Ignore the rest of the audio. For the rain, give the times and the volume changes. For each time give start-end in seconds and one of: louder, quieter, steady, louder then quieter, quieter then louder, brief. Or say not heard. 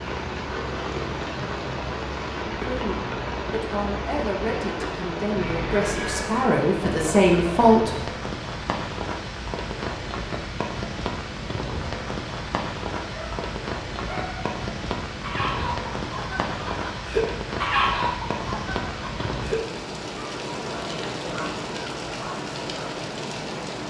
0.0-23.8 steady.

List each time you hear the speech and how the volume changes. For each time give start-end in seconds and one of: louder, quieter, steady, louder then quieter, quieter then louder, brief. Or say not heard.
2.6-8.0 louder.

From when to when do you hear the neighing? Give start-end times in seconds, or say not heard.
5.3-6.2.